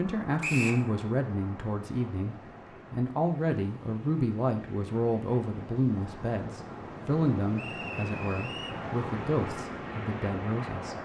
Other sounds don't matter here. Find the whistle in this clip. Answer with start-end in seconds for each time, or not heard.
0.4-0.8, 7.5-8.8.